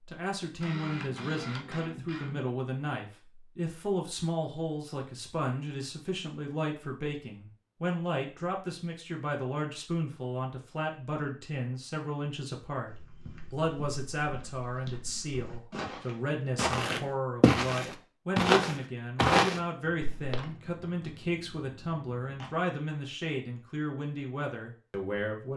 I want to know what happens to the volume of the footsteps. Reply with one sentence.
The loudness of the footsteps goes up.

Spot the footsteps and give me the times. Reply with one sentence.
The footsteps can be heard from 12.8 to 20.4 s.